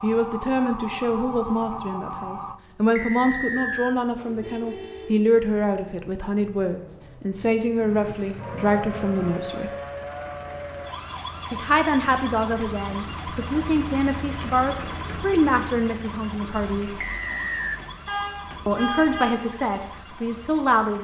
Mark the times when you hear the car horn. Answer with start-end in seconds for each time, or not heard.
4.2-5.2, 7.8-9.3, 18.1-19.4.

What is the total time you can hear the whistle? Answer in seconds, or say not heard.
2 s.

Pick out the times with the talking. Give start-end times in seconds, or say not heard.
0.0-9.7, 11.5-16.9, 18.6-20.9.